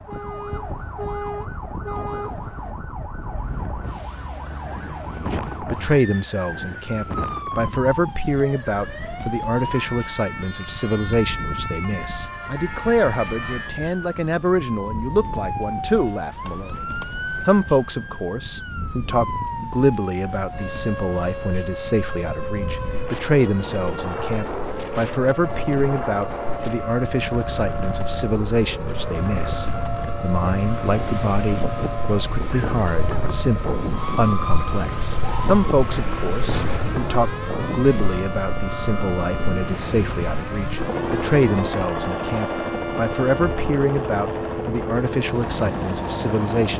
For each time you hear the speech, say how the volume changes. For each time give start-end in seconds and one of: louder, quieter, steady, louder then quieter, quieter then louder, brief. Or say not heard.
5.3-16.9 steady
17.4-46.7 steady.